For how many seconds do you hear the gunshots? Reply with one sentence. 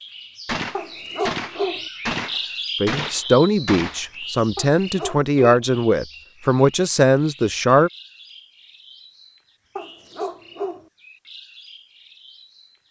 You can hear the gunshots for 4 seconds altogether.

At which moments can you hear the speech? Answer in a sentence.
You can hear the speech from 2.8 to 7.9 s.